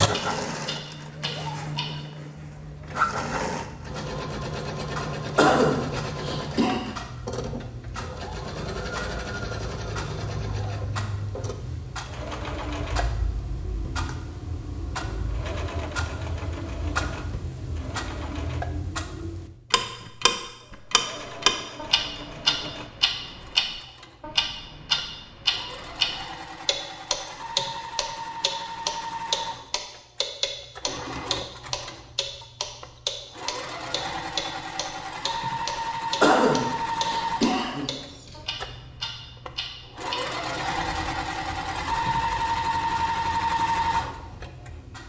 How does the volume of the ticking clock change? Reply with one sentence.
The loudness of the ticking clock goes up, then down.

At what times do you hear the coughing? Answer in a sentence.
The coughing can be heard from 5.3 to 6.8 s and from 36.2 to 38.4 s.